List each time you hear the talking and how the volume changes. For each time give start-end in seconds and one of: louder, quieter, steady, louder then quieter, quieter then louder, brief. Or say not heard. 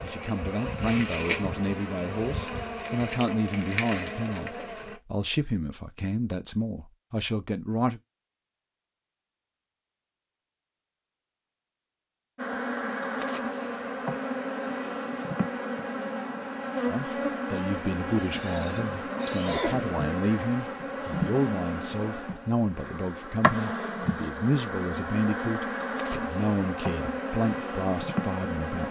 0.0-8.0 steady
16.9-28.8 steady.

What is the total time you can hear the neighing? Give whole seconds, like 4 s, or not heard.
2 s.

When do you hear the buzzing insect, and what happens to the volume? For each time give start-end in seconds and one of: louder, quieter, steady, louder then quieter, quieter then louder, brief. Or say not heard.
0.0-5.0 steady
12.3-28.8 steady.